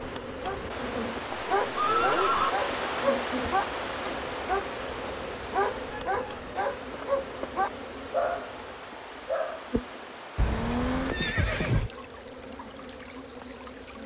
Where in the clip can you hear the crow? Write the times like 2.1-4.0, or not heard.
not heard.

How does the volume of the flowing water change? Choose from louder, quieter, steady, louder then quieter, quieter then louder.
quieter.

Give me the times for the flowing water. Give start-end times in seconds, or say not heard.
0.0-14.0.